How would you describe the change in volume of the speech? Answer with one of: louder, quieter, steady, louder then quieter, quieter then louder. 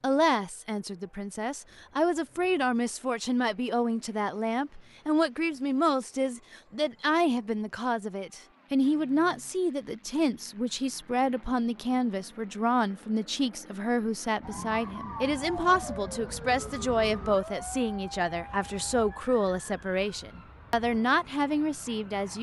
steady.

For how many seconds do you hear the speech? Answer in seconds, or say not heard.
22 s.